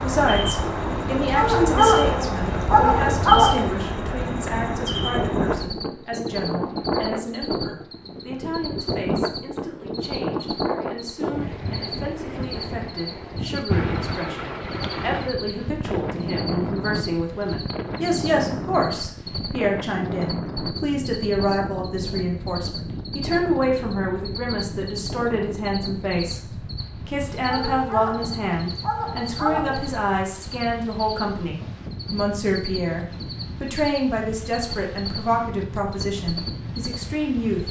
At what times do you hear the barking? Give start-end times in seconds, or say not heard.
1.3-3.6, 27.4-29.9.